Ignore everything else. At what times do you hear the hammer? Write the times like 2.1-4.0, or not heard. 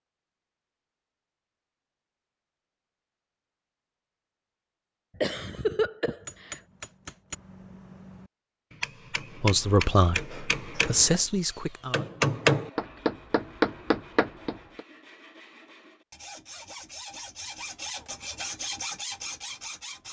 6.2-14.8.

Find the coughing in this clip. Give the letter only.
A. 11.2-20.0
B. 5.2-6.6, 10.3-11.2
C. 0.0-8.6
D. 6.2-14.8
B.